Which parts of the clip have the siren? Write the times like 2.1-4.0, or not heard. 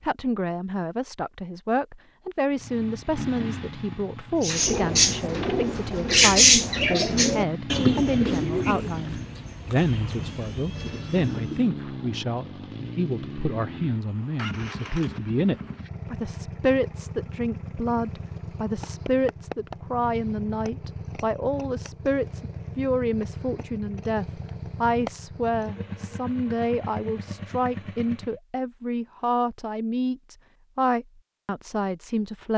not heard.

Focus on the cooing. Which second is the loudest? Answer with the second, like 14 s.
6 s.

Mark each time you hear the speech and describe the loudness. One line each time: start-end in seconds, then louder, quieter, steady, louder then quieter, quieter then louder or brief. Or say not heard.
0.0-32.5 steady.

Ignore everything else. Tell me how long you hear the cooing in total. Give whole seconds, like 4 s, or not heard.
7 s.